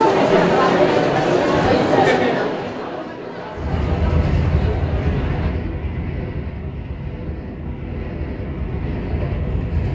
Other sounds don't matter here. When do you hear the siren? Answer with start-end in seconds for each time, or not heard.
not heard.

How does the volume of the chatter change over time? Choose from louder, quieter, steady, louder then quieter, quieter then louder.
quieter.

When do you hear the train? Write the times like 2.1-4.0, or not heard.
3.5-9.9.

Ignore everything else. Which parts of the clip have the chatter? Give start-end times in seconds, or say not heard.
0.0-5.5.